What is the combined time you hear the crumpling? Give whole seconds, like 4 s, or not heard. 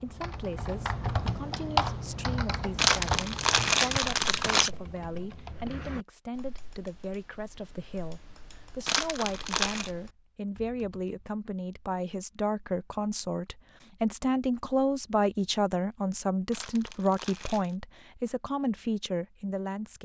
4 s.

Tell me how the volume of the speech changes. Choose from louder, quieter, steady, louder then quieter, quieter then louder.
louder.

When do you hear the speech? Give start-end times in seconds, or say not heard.
0.0-20.0.